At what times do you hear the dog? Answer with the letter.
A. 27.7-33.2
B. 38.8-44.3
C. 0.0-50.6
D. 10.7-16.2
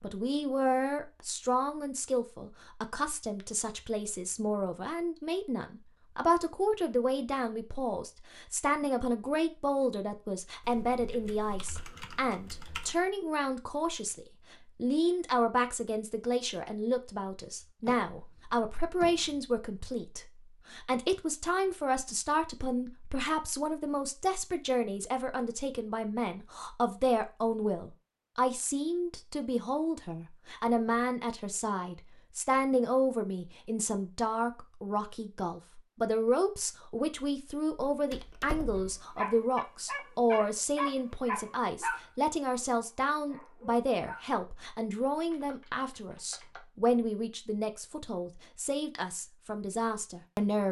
B.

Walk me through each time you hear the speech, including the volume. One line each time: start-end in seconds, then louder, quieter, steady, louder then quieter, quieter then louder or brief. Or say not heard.
0.0-50.6 steady.